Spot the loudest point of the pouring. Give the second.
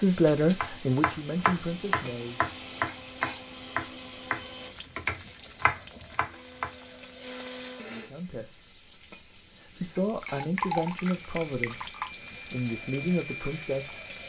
11 s.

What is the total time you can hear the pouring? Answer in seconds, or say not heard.
2 s.